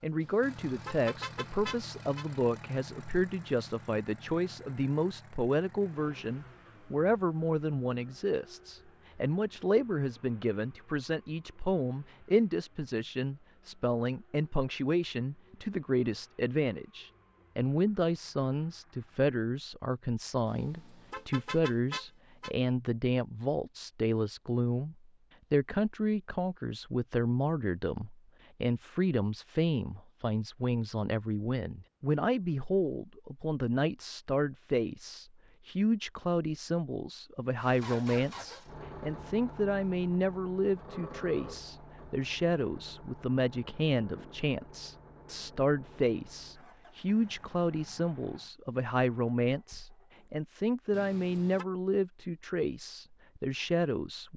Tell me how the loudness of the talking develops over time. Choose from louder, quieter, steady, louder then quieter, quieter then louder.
steady.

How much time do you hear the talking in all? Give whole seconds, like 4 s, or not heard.
54 s.